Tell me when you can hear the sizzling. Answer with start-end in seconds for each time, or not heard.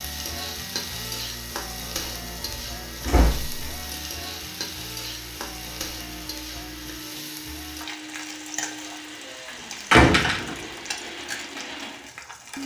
0.0-12.6.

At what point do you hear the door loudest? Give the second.
10 s.